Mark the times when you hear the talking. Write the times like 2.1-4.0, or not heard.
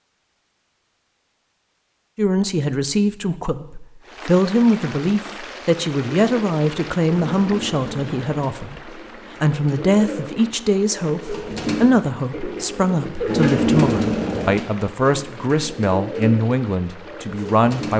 2.1-17.9.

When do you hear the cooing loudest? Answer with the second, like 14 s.
14 s.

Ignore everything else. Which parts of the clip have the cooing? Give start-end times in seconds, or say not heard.
6.2-17.9.